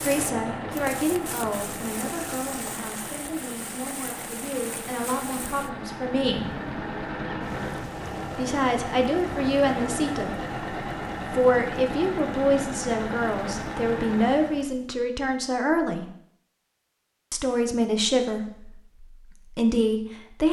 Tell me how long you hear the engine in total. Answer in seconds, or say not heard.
15 s.